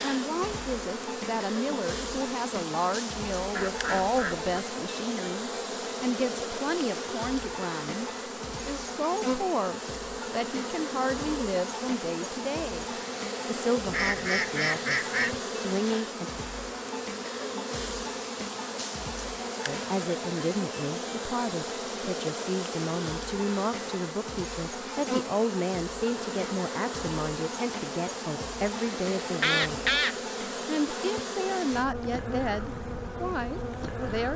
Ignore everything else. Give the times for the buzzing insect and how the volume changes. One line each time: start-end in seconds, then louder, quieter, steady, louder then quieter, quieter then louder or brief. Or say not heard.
0.0-34.3 steady.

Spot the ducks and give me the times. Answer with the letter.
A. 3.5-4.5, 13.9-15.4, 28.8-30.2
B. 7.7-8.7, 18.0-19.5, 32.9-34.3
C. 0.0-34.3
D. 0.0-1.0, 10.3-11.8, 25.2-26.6
A.